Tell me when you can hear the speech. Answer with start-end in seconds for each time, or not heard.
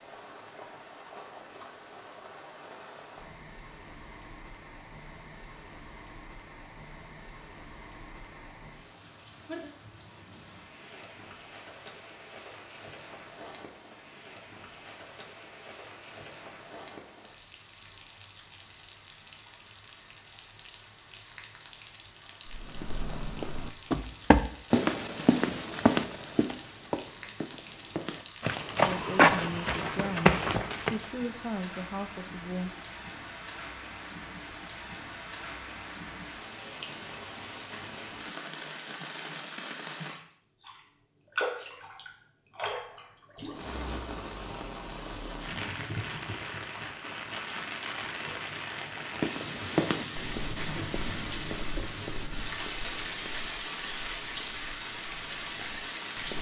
28.9-32.7.